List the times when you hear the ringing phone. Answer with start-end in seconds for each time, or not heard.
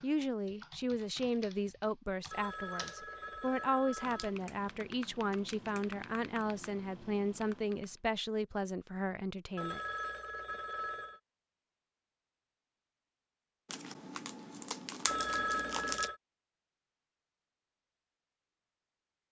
2.3-4.3, 9.6-11.2, 15.1-16.2.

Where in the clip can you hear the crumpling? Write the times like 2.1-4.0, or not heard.
13.7-16.1.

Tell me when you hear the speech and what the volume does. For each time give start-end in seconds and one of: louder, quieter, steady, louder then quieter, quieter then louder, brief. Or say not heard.
0.0-9.8 steady.